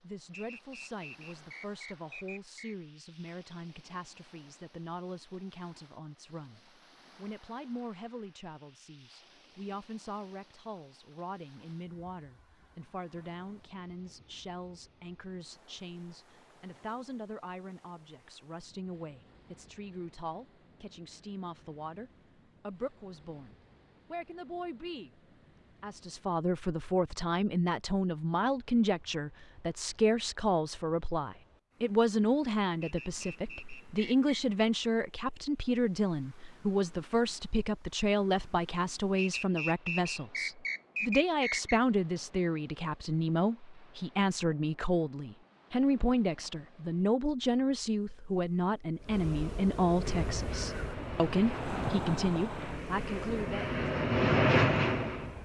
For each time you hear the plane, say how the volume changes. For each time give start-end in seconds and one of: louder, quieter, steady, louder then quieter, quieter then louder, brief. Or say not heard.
50.0-55.3 louder.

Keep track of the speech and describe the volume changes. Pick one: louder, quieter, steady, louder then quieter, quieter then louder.
louder.